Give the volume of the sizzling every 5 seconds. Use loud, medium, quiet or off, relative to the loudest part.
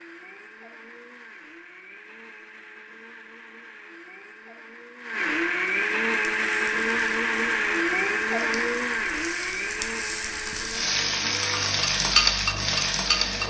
off, quiet, loud.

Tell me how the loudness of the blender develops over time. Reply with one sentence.
The volume of the blender goes up, then down.